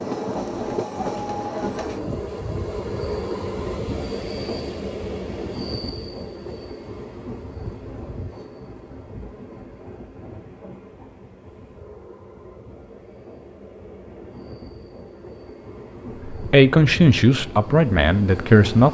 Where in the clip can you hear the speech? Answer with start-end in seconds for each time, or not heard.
16.2-18.9.